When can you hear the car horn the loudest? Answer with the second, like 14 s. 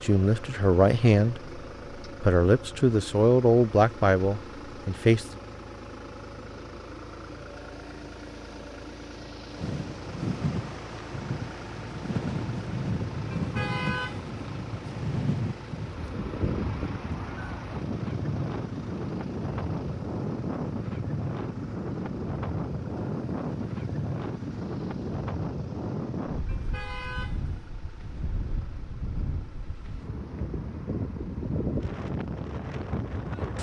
14 s.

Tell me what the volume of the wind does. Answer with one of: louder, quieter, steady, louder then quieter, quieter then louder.
steady.